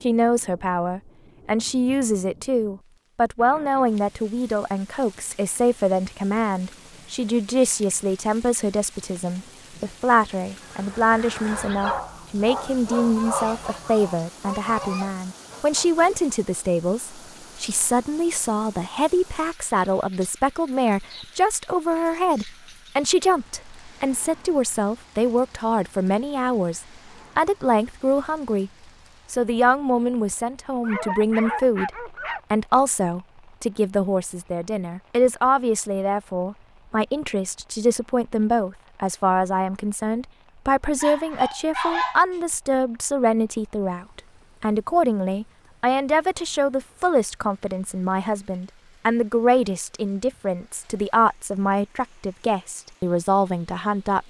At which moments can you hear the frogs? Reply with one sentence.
You can't hear the frogs here.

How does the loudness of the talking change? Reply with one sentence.
The volume of the talking stays about the same.